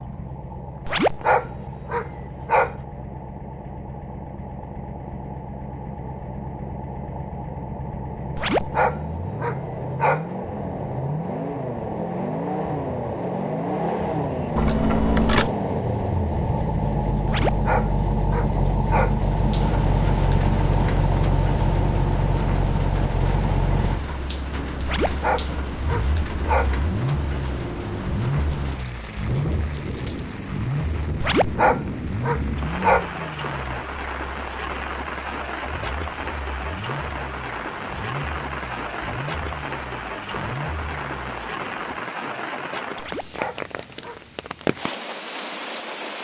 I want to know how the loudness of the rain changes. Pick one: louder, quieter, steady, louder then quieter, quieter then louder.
steady.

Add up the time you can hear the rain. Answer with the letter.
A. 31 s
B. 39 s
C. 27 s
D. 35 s
C.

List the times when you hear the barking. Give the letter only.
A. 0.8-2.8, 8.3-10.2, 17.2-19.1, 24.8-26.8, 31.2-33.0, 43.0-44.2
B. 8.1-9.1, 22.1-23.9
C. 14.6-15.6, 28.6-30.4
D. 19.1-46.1
A.